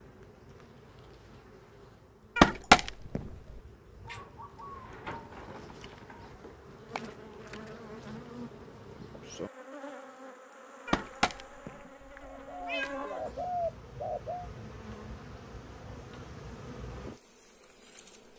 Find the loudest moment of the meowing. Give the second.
3 s.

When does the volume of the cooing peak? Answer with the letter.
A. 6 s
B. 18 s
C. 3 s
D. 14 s
D.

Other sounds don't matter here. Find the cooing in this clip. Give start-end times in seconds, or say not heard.
4.0-6.3, 11.8-14.5.